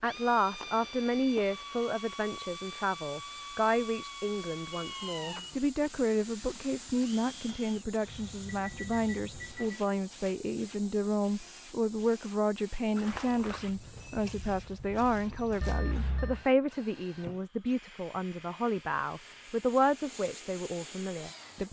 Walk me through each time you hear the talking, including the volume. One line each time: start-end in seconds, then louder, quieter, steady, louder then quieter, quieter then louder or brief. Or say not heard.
0.0-21.6 steady.